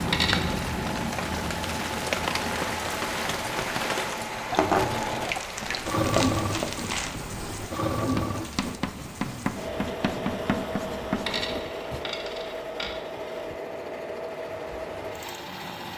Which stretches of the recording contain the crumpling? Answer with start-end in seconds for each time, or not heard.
4.5-7.2.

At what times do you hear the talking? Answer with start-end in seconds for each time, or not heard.
not heard.